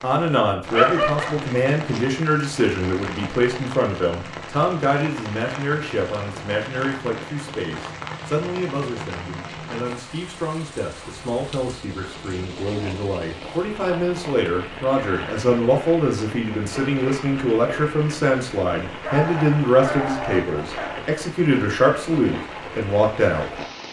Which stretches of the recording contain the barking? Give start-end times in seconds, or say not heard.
0.7-1.4, 19.1-20.9.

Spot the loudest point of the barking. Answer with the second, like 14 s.
1 s.